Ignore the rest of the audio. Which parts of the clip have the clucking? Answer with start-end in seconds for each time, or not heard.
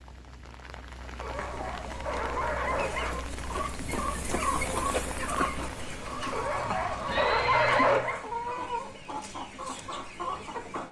1.2-10.8.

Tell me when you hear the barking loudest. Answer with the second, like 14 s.
8 s.